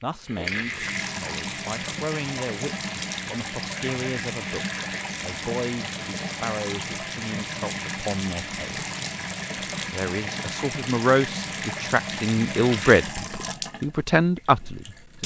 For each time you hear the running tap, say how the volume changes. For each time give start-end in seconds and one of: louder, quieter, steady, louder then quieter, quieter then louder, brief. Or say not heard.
0.0-15.2 steady.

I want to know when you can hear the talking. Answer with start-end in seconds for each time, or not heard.
0.0-8.8, 9.9-15.2.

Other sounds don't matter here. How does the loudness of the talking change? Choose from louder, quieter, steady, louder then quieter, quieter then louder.
louder.